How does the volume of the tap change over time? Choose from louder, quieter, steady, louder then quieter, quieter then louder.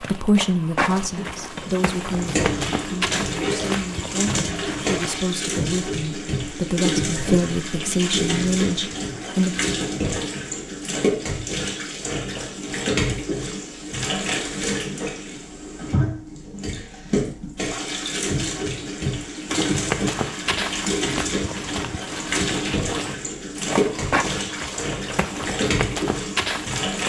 steady.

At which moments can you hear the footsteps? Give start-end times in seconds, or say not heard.
0.0-5.2, 19.4-27.0.